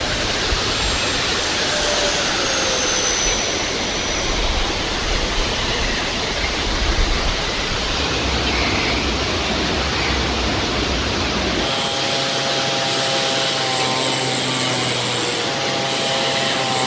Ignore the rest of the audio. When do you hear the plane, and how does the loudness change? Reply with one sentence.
You can hear the plane from 0.0 to 16.8 s, getting quieter then louder.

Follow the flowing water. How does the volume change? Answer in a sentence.
The volume of the flowing water stays about the same.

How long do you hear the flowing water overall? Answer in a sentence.
You can hear the flowing water for 17 seconds altogether.